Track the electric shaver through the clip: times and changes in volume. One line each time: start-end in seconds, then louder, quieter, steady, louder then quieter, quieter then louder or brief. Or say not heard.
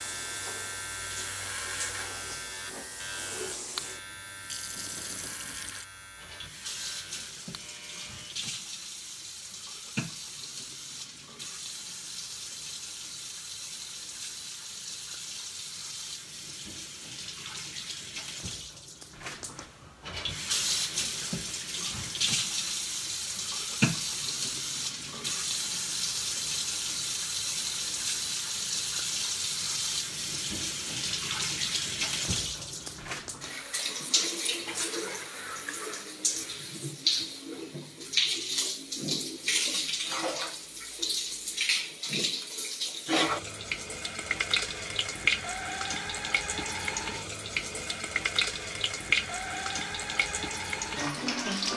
0.0-8.4 quieter.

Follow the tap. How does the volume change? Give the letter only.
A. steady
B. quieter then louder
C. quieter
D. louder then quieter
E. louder
E.